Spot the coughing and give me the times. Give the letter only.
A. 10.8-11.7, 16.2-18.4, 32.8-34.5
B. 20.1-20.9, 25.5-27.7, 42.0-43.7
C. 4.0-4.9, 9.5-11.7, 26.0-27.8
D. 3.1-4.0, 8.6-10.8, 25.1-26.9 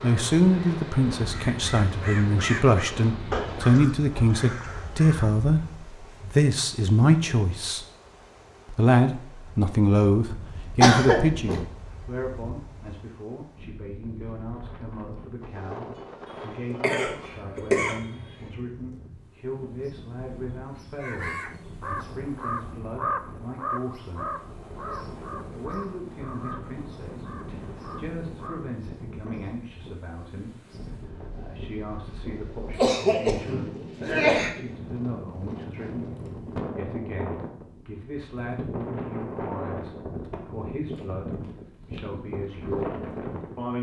A.